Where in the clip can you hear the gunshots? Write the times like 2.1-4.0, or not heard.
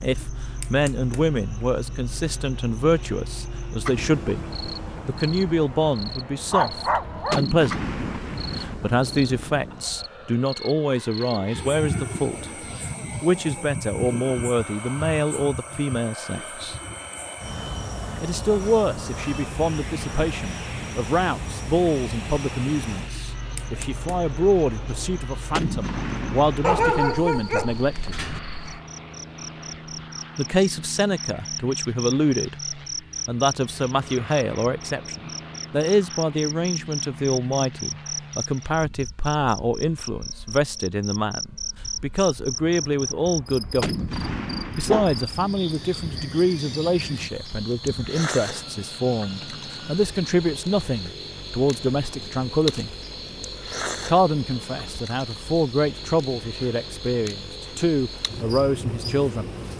7.2-8.8, 25.5-27.0, 43.8-45.2.